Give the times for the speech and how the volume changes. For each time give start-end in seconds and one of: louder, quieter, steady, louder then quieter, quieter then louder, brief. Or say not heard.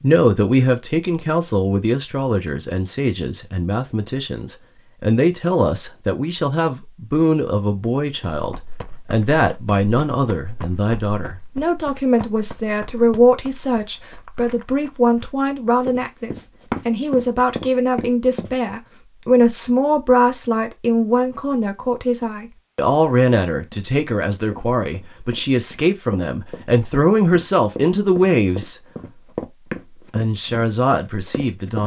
0.0-28.8 steady
29.9-31.8 brief.